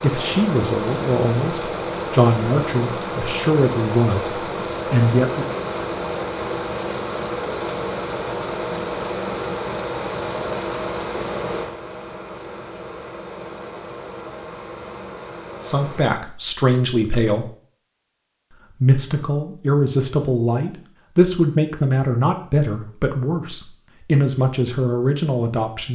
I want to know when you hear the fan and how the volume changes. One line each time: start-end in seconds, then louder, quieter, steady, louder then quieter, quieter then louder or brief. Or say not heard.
0.0-16.1 quieter.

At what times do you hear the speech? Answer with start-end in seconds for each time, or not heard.
0.0-5.5, 15.6-17.5, 18.8-25.8.